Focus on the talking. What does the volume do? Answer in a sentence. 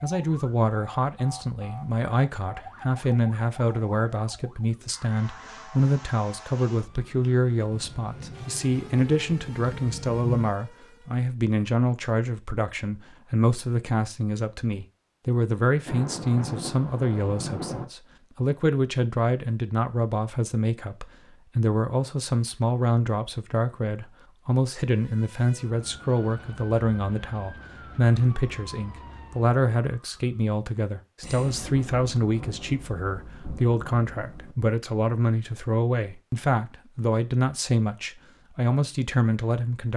The volume of the talking stays about the same.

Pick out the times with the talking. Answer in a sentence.
You can hear the talking from 0.0 to 39.9 s.